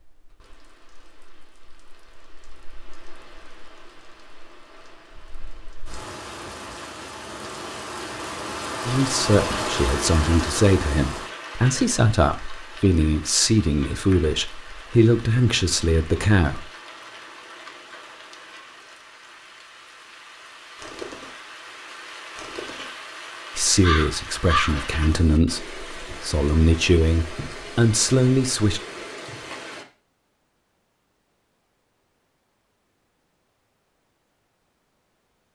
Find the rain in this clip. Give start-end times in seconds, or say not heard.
0.1-29.9.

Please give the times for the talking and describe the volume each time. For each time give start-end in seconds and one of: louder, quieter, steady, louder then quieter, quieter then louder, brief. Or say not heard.
8.8-16.7 steady
23.6-28.8 louder.